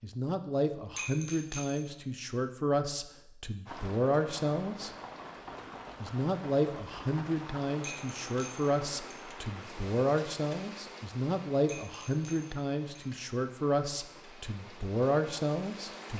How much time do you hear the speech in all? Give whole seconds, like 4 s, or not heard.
15 s.